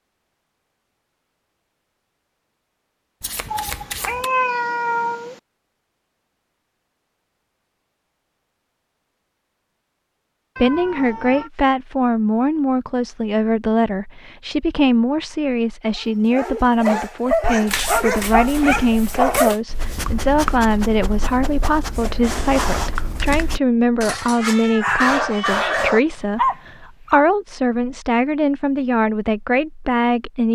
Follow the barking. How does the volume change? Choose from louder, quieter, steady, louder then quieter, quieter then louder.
quieter then louder.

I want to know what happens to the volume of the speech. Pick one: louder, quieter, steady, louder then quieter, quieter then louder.
steady.